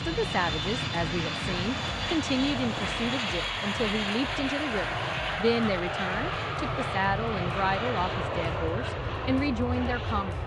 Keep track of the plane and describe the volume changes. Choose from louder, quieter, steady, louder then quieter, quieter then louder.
steady.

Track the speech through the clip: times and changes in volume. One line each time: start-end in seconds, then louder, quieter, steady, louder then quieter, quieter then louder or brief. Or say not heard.
0.1-10.4 steady.